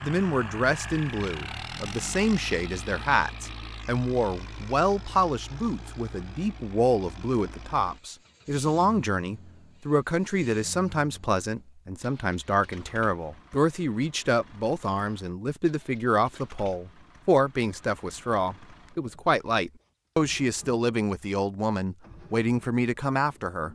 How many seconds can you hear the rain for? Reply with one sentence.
The rain can't be heard in this clip.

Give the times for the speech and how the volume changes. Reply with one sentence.
You can hear the speech from 0.0 to 23.7 s, at a steady volume.